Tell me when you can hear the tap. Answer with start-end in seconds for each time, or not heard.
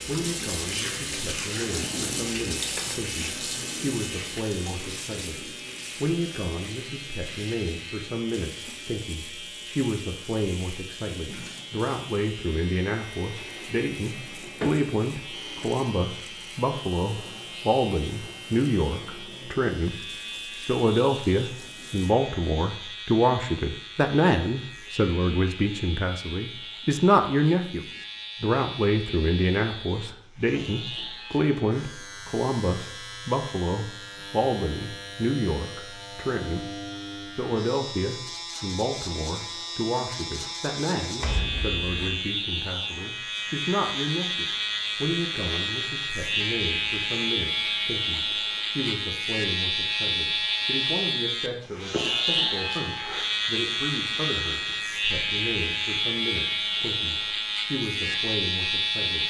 0.0-22.1.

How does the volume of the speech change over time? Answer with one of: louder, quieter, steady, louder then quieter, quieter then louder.
louder then quieter.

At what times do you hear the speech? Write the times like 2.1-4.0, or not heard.
0.1-36.7, 37.4-59.2.